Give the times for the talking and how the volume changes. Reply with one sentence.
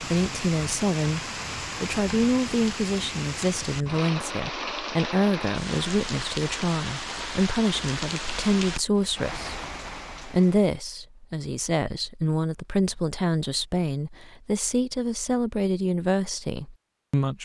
You can hear the talking briefly from 0.0 to 1.2 s; from 1.8 to 9.6 s, at a steady volume; and from 10.2 to 17.3 s, at a steady volume.